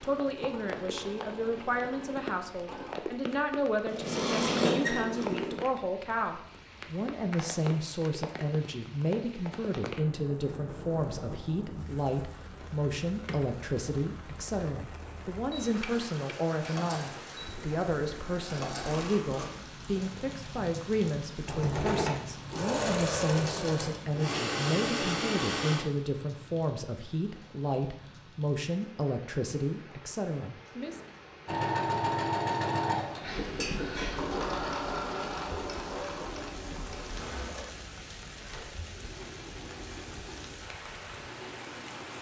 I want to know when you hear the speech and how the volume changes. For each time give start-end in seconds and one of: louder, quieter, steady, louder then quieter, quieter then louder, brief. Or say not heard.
0.0-31.0 steady.